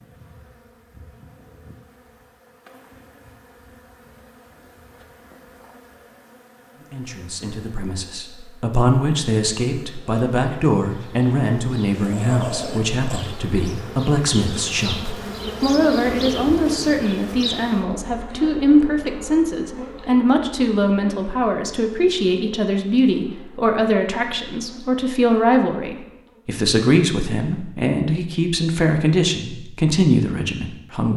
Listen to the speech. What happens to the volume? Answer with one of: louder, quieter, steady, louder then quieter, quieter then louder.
steady.